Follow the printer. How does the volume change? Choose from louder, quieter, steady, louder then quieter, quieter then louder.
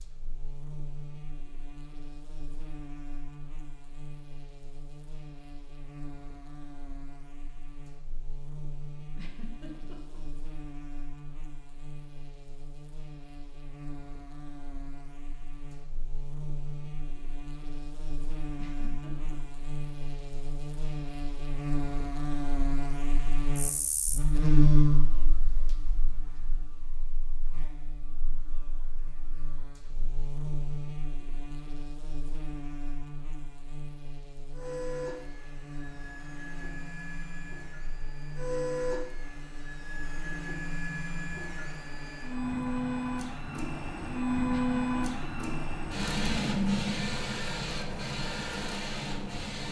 louder.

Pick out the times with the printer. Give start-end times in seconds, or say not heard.
34.5-49.6.